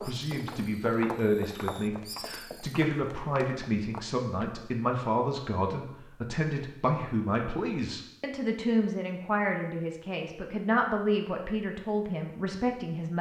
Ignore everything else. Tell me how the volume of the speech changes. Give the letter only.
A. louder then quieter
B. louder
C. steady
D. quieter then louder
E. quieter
C.